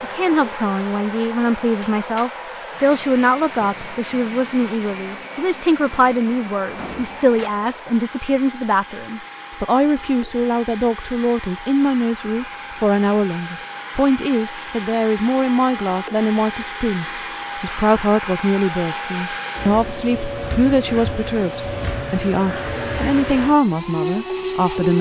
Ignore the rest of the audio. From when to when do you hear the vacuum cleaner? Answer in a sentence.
The vacuum cleaner can be heard from 0.0 to 24.9 s.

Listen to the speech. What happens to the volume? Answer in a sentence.
The loudness of the speech stays about the same.